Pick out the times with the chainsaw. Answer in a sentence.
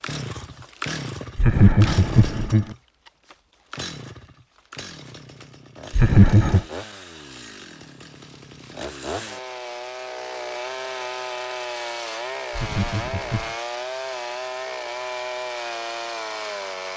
The chainsaw can be heard from 0.0 to 16.9 s.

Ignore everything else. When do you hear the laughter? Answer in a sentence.
You can hear the laughter from 1.4 to 2.8 s, from 5.9 to 6.7 s and from 12.5 to 13.6 s.